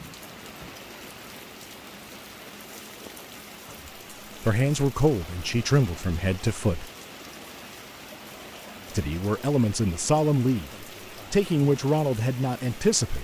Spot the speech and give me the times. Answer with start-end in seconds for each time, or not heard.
4.4-6.9, 8.9-13.2.